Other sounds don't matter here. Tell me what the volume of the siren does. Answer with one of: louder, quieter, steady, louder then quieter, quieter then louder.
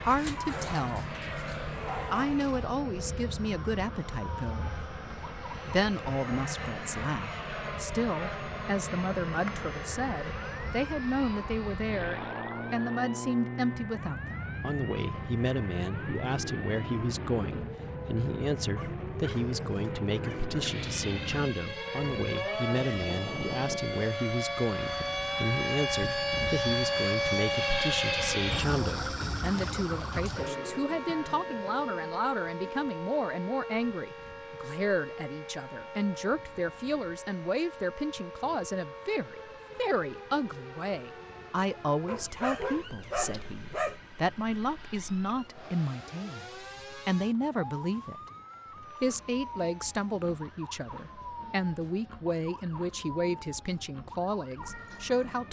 louder then quieter.